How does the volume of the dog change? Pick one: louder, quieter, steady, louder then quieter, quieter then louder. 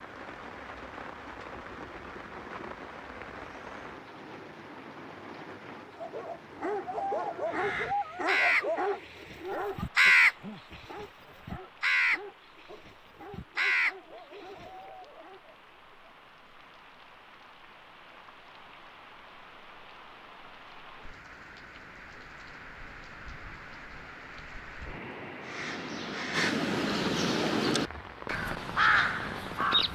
quieter.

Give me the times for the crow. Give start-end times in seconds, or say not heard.
7.5-8.7, 9.3-14.7, 25.4-29.9.